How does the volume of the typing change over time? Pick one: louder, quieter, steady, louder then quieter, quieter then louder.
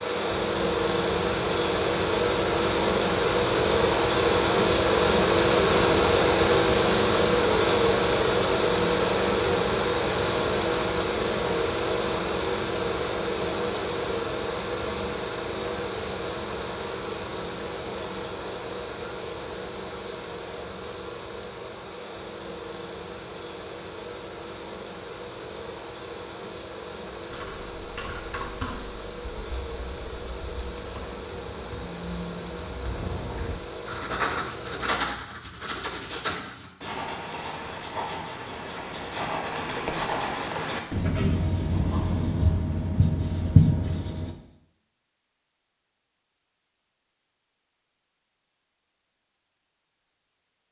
quieter then louder.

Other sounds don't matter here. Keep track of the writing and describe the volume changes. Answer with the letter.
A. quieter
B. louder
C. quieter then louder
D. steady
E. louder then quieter
B.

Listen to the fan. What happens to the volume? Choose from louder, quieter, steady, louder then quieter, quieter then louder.
quieter.